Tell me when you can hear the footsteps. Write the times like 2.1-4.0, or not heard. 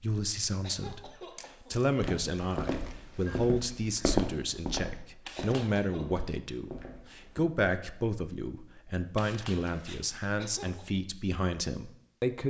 2.0-7.4.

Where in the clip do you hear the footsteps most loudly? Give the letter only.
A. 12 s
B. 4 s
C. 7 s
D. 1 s
B.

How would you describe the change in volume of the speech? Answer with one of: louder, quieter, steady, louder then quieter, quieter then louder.
steady.